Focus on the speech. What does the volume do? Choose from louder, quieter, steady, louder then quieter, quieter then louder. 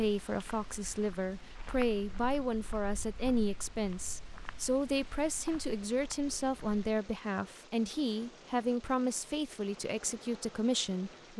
steady.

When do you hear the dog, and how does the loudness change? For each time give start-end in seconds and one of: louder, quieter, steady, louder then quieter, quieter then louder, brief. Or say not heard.
not heard.